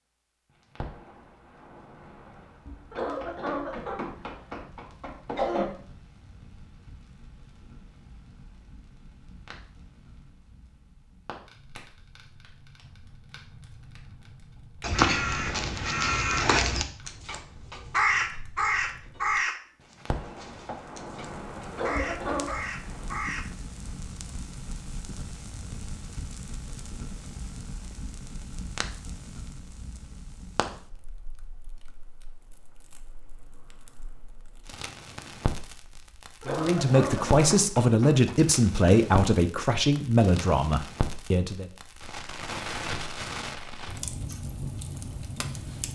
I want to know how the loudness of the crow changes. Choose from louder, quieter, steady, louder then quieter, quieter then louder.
quieter then louder.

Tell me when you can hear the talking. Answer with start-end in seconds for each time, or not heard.
36.5-41.6.